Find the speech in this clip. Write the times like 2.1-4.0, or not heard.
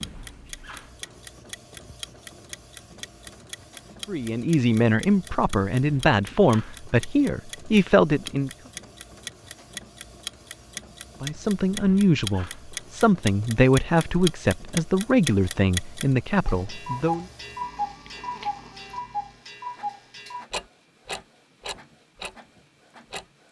4.0-8.5, 11.2-17.2.